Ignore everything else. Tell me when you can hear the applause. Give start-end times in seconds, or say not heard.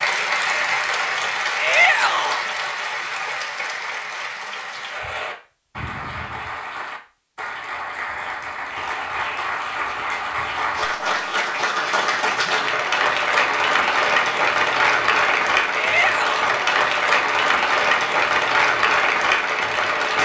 0.0-20.2.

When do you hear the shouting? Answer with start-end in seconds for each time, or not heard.
1.6-2.5, 15.8-16.4.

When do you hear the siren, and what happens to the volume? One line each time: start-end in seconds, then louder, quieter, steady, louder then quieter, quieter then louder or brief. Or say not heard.
not heard.